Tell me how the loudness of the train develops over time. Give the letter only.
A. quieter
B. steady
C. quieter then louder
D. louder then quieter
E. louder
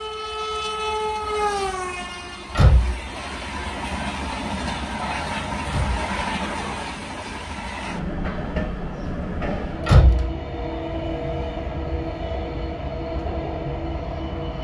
B.